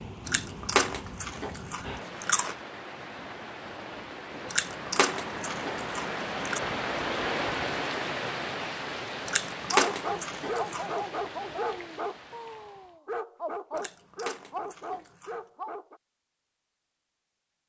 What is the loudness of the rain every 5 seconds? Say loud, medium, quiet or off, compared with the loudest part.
medium, loud, medium, off.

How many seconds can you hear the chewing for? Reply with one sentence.
You can hear the chewing for 8 seconds altogether.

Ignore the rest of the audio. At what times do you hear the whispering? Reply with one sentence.
The whispering can't be heard in this clip.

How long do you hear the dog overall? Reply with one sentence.
The dog can be heard for 6 seconds in total.